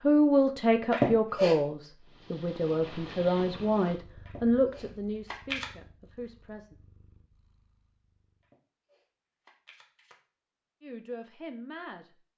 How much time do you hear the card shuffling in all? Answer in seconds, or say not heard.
4 s.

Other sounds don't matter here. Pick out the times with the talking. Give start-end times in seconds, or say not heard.
0.0-6.8, 10.8-12.1.